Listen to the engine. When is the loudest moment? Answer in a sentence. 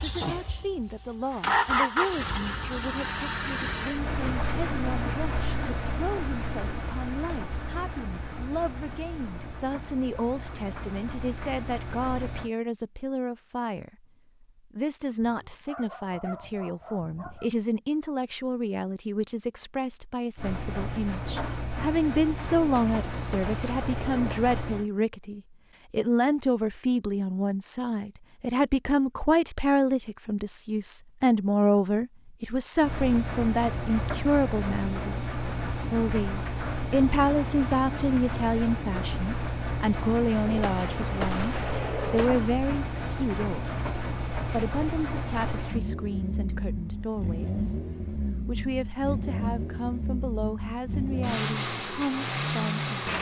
The volume of the engine peaks at 2 seconds.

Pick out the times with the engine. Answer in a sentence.
You can hear the engine from 0.0 to 12.5 s, from 20.4 to 24.9 s and from 32.8 to 53.1 s.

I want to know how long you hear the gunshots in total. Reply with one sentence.
You can hear the gunshots for 4 seconds altogether.